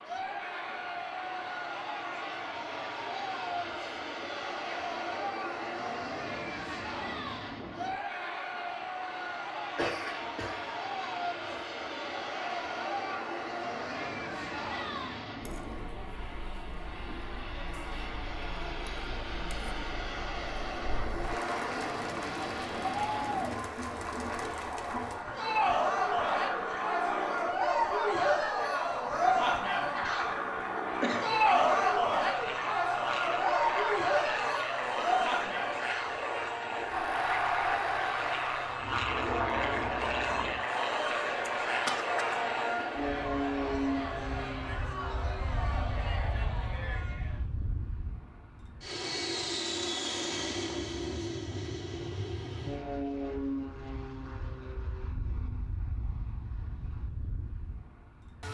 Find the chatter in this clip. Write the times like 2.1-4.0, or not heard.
0.0-47.5.